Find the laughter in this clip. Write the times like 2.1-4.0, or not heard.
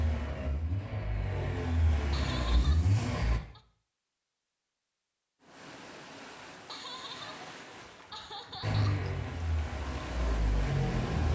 2.1-3.6, 6.7-9.1.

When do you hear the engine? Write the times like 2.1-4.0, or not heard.
0.0-3.4, 8.6-11.3.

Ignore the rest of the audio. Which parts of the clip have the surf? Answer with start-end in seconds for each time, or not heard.
5.4-11.3.